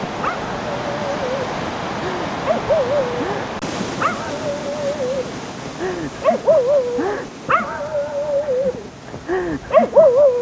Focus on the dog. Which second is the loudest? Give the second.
10 s.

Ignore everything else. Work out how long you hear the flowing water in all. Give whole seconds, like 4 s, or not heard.
10 s.